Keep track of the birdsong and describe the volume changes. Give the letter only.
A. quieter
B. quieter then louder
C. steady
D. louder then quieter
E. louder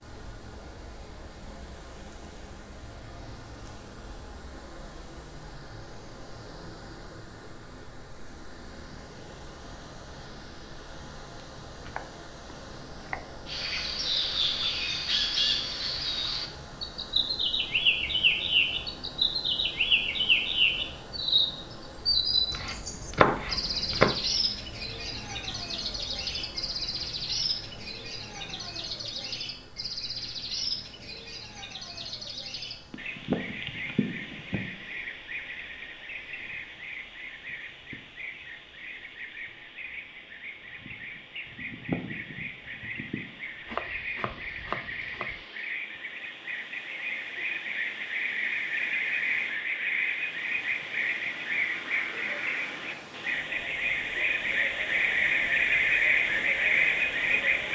B.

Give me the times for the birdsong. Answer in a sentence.
You can hear the birdsong from 13.4 to 57.7 s.